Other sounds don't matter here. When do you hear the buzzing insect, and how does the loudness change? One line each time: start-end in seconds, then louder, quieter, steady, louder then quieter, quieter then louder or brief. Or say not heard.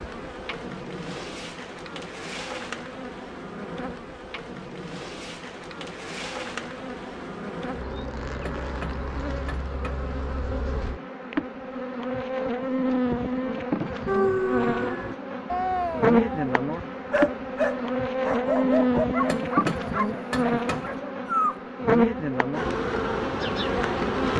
0.0-24.3 louder.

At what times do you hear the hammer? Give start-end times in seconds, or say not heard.
8.4-10.1, 19.2-21.0.